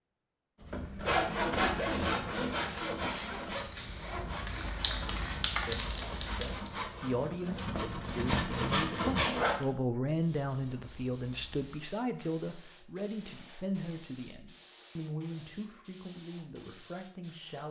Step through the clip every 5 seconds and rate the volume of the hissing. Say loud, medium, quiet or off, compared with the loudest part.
medium, loud, quiet, quiet.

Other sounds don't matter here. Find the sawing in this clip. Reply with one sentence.
The sawing can be heard from 0.6 to 9.7 s.